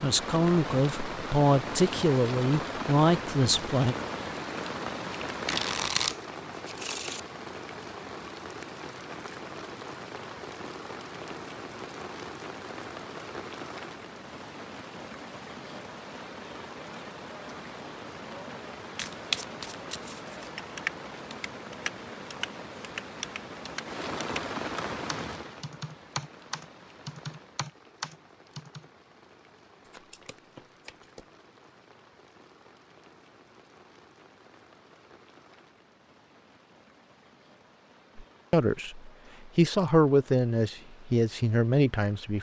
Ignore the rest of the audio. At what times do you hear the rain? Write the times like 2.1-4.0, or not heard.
0.0-42.3.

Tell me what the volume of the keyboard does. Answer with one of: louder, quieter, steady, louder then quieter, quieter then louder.
quieter then louder.